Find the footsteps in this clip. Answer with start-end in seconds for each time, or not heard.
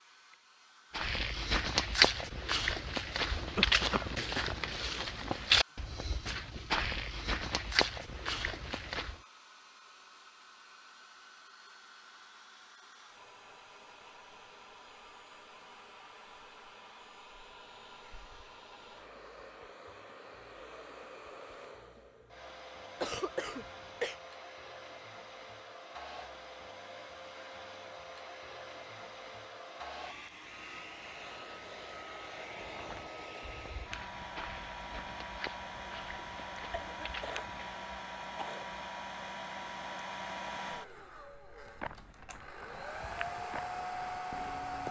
0.9-9.2, 32.5-37.9, 41.6-44.8.